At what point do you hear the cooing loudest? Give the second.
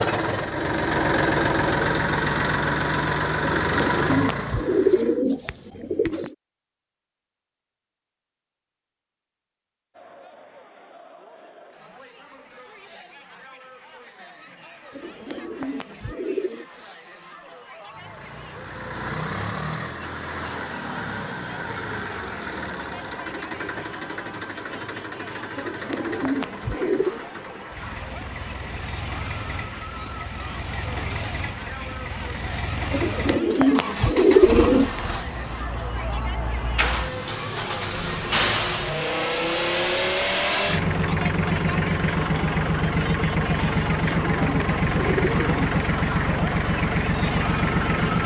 34 s.